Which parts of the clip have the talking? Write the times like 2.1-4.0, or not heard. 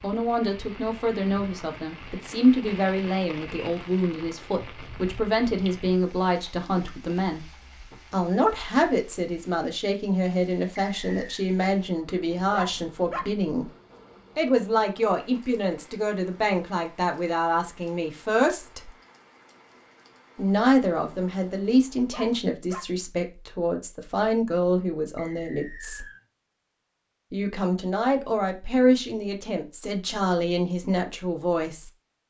0.0-7.5, 8.1-13.7, 14.3-18.9, 20.4-26.1, 27.3-31.9.